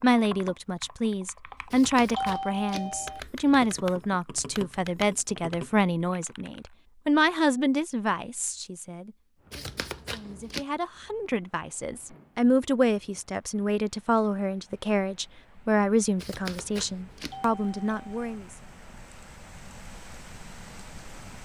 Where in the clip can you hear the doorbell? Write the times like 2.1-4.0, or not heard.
2.1-3.2, 17.3-18.3.